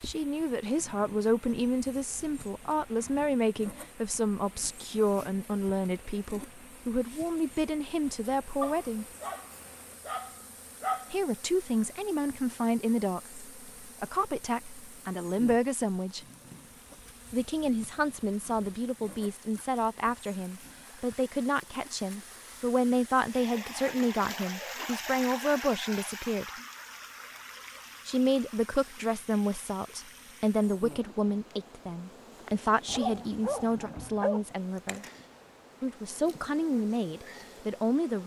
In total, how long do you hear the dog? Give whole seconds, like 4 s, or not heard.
4 s.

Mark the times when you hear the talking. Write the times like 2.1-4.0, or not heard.
0.0-9.1, 11.1-16.2, 17.3-26.5, 28.1-35.0, 35.8-38.2.